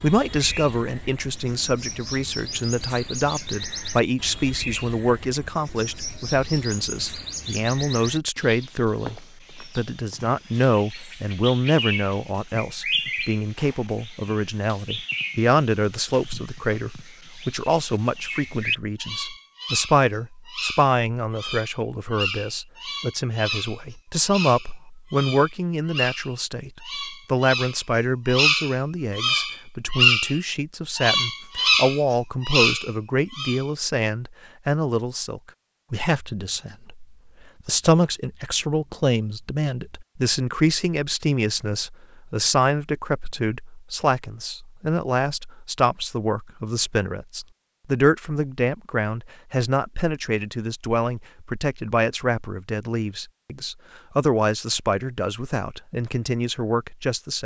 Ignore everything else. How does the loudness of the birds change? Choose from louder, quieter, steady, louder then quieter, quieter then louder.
louder.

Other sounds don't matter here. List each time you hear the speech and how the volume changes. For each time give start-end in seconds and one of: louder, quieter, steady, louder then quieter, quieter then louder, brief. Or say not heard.
0.0-57.4 steady.